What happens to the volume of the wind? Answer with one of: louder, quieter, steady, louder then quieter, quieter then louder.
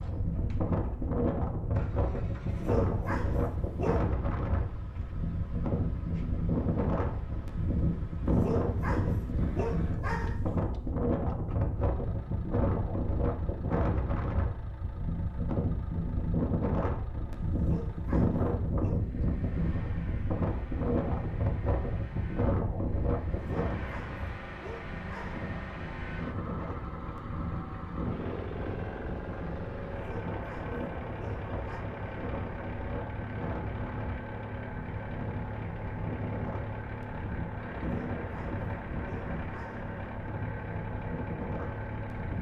quieter.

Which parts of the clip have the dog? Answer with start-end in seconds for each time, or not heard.
2.5-4.0, 8.2-10.6, 17.5-19.0, 23.3-25.5, 29.9-31.9, 37.8-39.9.